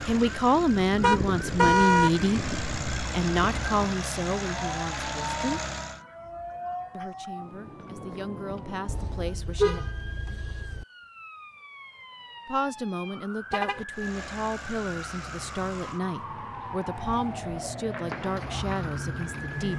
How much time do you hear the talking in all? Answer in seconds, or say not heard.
16 s.